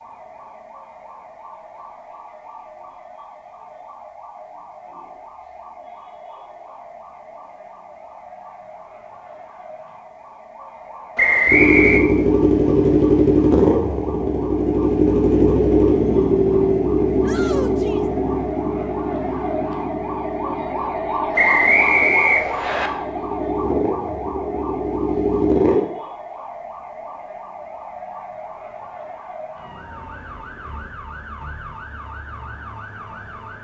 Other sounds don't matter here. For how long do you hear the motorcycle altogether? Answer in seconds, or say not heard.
14 s.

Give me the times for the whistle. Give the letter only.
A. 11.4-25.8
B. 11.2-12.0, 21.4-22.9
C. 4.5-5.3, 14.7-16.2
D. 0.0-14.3
B.